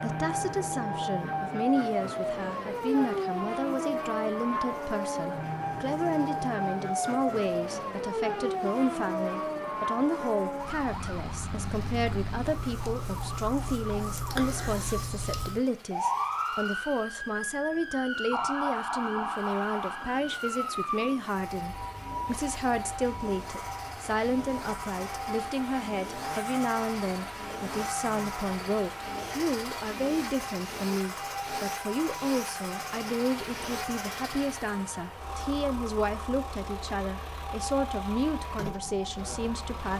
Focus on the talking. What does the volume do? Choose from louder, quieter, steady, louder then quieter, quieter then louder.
steady.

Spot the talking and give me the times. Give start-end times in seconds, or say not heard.
0.0-39.9.